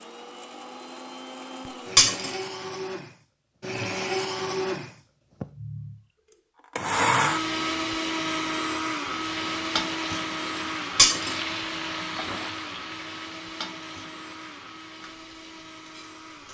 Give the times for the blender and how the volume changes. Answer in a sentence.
You can hear the blender from 0.0 to 16.4 s, getting louder then quieter.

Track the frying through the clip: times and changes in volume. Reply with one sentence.
The frying can be heard from 9.1 to 16.4 s, getting quieter.